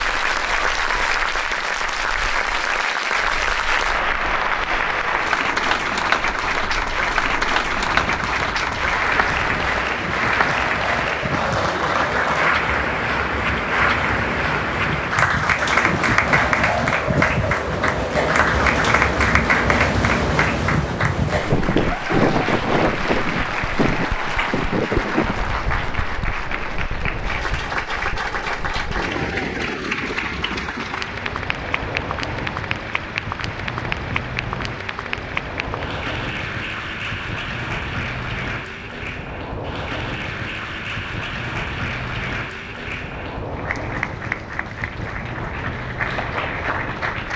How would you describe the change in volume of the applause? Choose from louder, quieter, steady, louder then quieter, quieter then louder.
quieter.